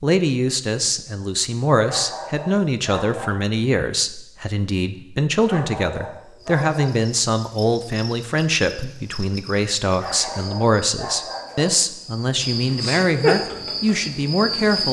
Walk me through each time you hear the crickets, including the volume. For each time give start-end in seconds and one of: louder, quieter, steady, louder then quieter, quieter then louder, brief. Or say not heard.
6.4-14.8 louder.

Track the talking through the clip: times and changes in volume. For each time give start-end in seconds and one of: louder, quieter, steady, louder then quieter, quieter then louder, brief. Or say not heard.
0.0-14.8 steady.